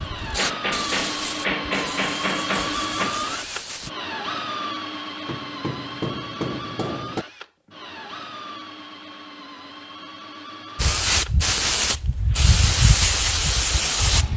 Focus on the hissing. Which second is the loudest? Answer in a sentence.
The volume of the hissing peaks at 13 seconds.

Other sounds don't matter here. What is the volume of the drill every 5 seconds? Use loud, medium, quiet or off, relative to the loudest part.
loud, medium, medium.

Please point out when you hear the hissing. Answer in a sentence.
The hissing can be heard from 0.0 to 3.9 s and from 10.8 to 14.3 s.